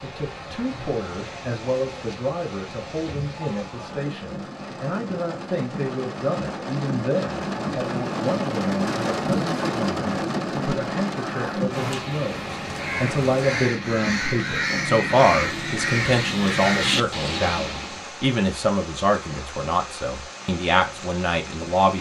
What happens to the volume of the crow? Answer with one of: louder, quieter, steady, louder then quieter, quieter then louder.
louder.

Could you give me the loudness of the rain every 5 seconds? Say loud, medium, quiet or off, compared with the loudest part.
medium, loud, loud, medium, medium.